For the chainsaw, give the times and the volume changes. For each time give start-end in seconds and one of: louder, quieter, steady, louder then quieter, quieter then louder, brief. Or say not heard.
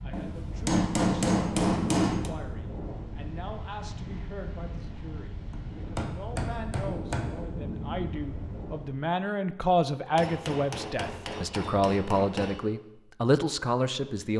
not heard.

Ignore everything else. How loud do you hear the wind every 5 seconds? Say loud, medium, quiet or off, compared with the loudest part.
loud, loud, off.